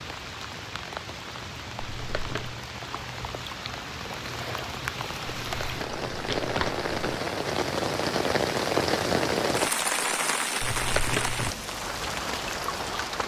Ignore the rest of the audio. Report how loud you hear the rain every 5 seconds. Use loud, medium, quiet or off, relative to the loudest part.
medium, loud, loud.